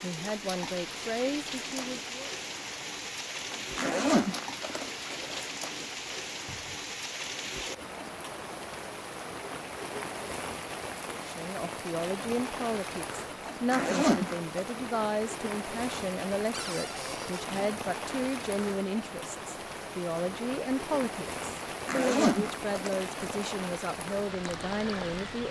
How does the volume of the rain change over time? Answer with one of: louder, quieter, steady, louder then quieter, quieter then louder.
steady.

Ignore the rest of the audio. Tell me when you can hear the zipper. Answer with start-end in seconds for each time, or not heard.
3.5-5.5, 13.4-14.7, 21.6-23.6.